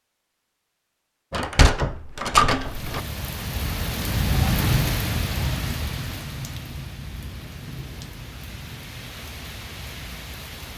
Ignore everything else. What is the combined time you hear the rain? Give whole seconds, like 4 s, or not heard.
8 s.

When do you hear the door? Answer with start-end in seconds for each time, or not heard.
1.3-3.0.